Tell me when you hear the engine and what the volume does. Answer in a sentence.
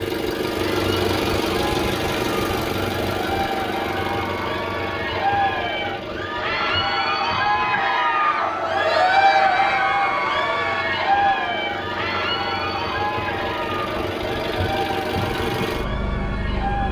The engine can be heard from 0.0 to 16.8 s, getting quieter then louder.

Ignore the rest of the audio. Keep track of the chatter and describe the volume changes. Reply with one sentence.
The loudness of the chatter goes up, then down.